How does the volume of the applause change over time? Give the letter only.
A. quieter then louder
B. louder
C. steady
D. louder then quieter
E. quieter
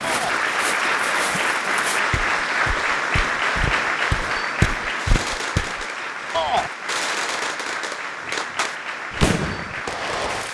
E.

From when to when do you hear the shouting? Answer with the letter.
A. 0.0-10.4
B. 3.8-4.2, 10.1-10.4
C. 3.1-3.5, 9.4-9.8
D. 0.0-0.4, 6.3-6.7
D.